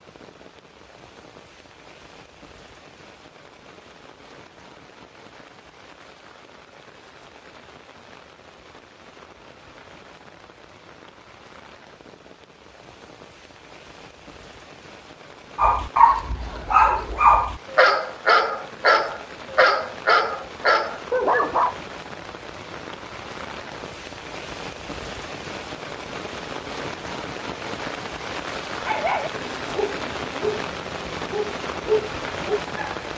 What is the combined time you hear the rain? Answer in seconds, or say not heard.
33 s.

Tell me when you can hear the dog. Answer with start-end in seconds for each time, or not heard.
15.6-21.8, 28.7-33.0.